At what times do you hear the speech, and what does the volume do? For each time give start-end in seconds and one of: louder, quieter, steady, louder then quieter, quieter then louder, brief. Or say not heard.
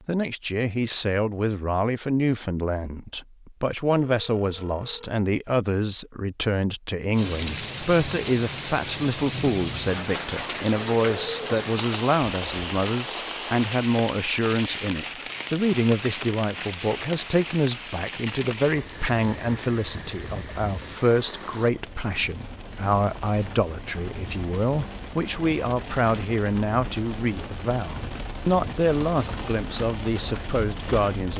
0.1-31.3 steady.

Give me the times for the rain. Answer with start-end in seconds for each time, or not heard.
7.1-31.3.